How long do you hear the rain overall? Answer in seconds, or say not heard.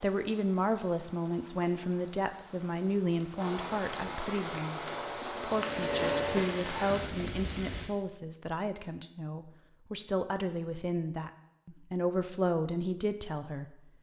8 s.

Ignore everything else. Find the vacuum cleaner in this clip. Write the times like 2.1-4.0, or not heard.
4.8-6.7.